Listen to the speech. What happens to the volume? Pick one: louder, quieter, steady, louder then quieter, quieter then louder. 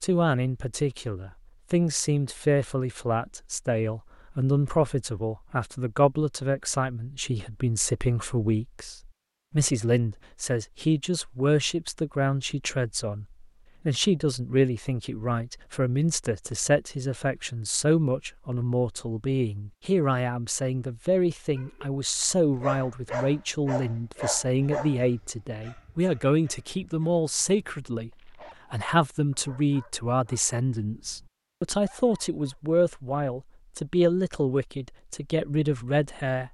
steady.